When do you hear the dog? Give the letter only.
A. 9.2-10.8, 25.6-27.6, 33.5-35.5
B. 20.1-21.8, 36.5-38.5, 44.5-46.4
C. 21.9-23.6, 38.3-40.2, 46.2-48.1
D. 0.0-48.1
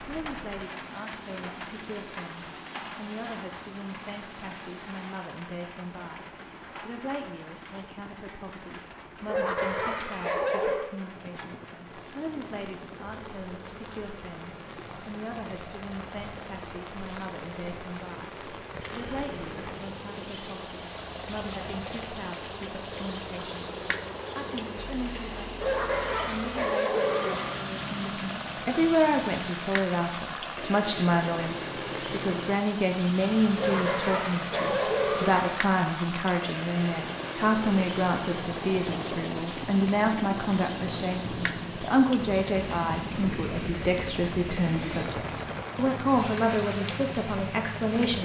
A.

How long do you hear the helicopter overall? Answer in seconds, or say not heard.
48 s.